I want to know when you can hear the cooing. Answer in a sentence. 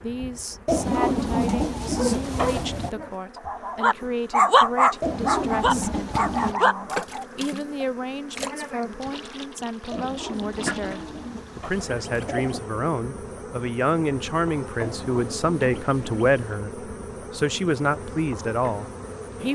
You can hear the cooing from 0.7 to 2.9 s, from 5.0 to 6.5 s, from 9.9 to 12.8 s and from 14.8 to 16.6 s.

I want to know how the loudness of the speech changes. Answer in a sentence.
The loudness of the speech goes up.